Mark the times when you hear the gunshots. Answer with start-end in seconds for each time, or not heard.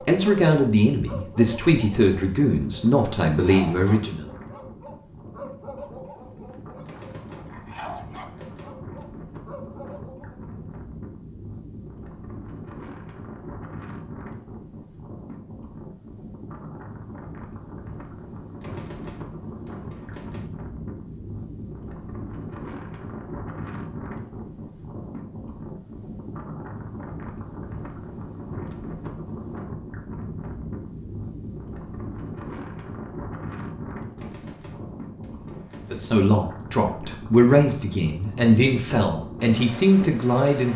6.8-8.7, 18.6-20.4, 34.1-36.0.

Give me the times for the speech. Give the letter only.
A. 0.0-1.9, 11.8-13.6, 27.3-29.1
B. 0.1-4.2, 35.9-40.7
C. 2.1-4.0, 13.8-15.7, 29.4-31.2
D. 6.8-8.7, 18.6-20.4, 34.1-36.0
B.